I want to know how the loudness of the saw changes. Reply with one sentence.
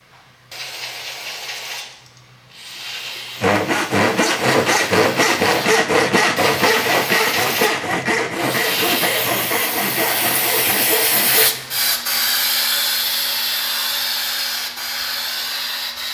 The loudness of the saw goes down.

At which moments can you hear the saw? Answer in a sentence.
The saw can be heard from 3.4 to 11.5 s.